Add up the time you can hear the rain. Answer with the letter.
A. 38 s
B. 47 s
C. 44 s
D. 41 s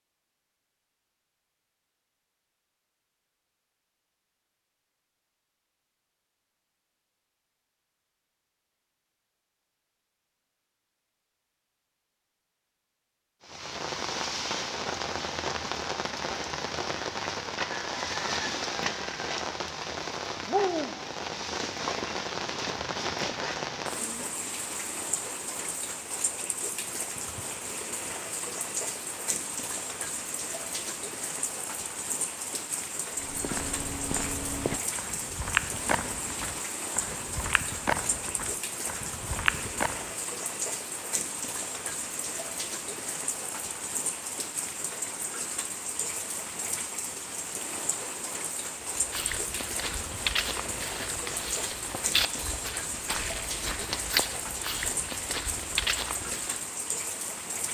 C.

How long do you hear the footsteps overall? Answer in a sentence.
The footsteps can be heard for 15 seconds in total.